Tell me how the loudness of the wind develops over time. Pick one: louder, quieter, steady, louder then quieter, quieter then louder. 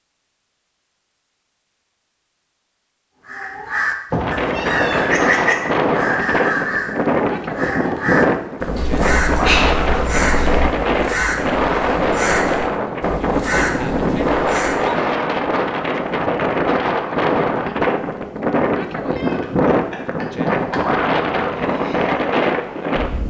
steady.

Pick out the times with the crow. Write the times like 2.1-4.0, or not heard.
3.2-14.9.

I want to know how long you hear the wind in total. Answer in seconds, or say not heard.
19 s.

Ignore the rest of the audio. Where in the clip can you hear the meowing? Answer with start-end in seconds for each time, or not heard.
4.1-5.0, 8.8-10.7, 19.1-20.8.